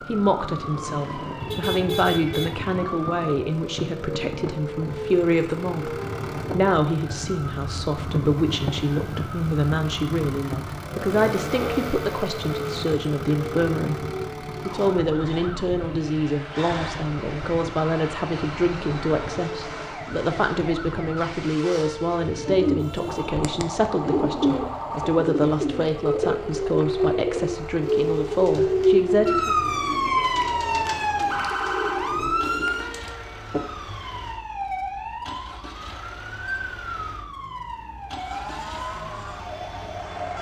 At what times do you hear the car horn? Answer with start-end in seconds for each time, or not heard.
1.4-2.8, 22.8-23.4.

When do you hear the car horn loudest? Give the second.
2 s.